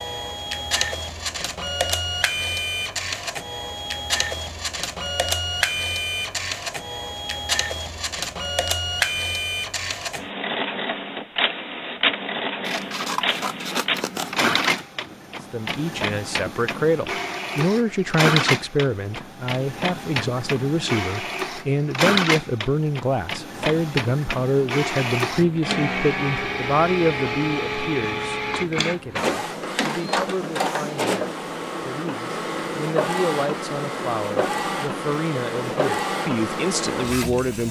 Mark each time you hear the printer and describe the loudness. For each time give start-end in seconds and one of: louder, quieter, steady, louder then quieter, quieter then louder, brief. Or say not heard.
0.0-37.6 steady.